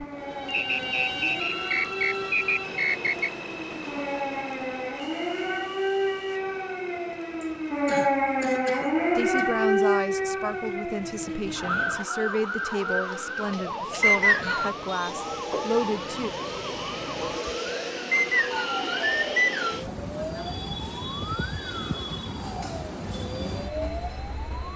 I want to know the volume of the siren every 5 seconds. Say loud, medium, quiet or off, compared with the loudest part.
medium, loud, medium, quiet, quiet.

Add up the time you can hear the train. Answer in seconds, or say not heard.
25 s.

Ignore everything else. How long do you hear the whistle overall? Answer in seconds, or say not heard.
5 s.